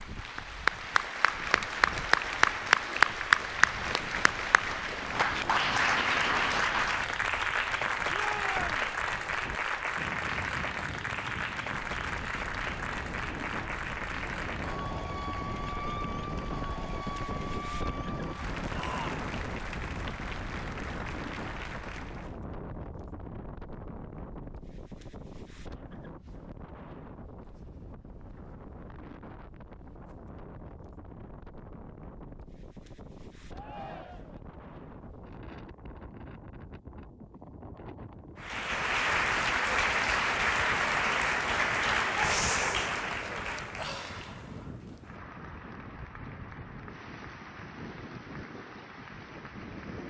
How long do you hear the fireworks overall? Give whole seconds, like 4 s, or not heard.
not heard.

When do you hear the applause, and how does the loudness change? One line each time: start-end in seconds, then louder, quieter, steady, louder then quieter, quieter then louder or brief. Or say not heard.
0.0-22.4 quieter
38.4-50.0 quieter.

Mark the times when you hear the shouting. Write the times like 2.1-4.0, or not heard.
8.1-8.9, 18.7-19.1, 33.5-34.4.